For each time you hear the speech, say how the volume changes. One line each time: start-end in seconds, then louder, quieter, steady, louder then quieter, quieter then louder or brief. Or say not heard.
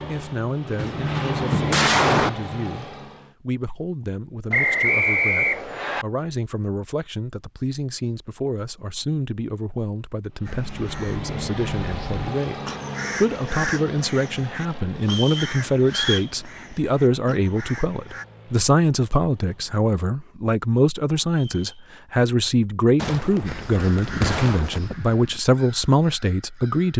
0.0-26.9 louder.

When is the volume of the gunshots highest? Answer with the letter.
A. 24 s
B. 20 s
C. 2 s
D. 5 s
C.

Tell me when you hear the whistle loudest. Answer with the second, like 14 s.
5 s.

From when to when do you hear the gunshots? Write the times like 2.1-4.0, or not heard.
0.8-2.3, 22.9-24.8.